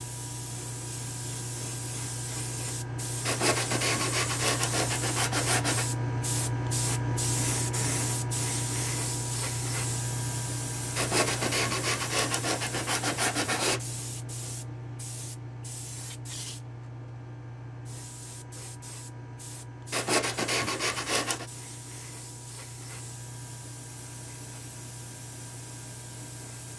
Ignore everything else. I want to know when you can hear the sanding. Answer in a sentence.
You can hear the sanding from 3.2 to 5.8 s, from 10.9 to 13.8 s and from 19.9 to 21.5 s.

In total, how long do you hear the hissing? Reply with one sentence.
The hissing can be heard for 27 seconds in total.